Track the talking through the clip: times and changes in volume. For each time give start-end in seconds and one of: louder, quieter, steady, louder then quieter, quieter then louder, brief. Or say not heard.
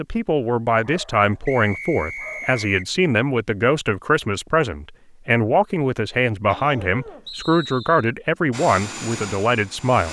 0.0-10.0 steady.